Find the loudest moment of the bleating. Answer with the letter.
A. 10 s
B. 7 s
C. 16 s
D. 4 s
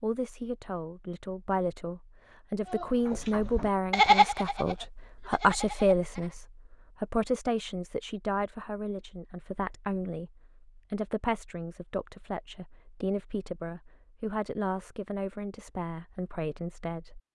D.